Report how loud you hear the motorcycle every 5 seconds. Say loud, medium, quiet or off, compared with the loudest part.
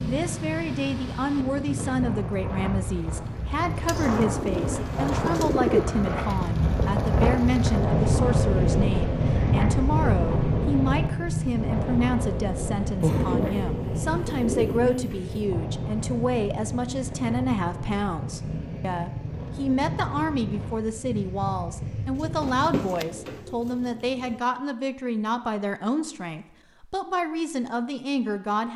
medium, loud, loud, medium, medium, off.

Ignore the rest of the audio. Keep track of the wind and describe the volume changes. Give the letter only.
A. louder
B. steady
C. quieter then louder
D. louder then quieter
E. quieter
D.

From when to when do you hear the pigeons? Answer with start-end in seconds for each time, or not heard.
3.9-5.8, 13.0-15.4, 22.1-24.4.